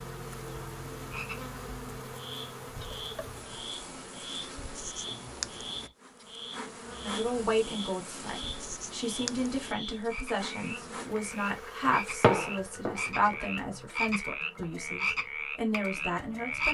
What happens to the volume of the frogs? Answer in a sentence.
The volume of the frogs goes up.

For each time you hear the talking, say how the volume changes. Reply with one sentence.
You can hear the talking from 7.0 to 16.6 s, at a steady volume.